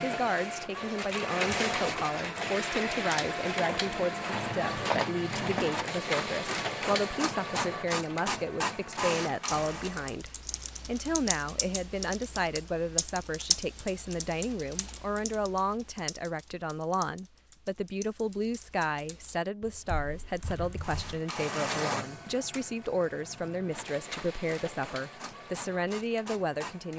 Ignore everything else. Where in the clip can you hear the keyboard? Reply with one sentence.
You can hear the keyboard from 9.4 to 21.2 s.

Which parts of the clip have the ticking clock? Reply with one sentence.
You can't hear the ticking clock here.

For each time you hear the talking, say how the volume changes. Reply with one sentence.
The talking can be heard from 0.0 to 26.9 s, at a steady volume.